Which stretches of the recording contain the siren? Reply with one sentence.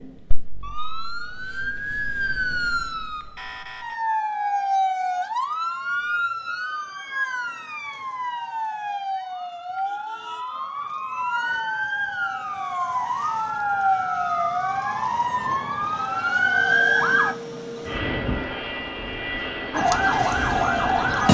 You can hear the siren from 0.0 to 17.4 s and from 19.7 to 21.3 s.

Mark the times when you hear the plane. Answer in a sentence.
The plane can be heard from 16.5 to 21.3 s.